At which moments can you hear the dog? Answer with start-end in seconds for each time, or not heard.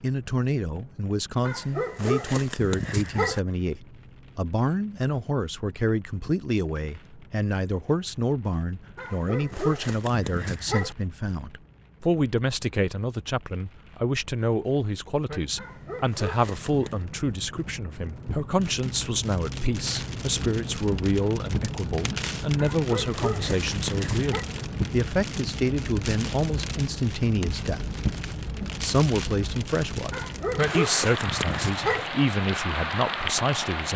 1.4-3.4, 8.9-10.9, 15.6-17.1, 22.6-24.5, 30.1-32.1.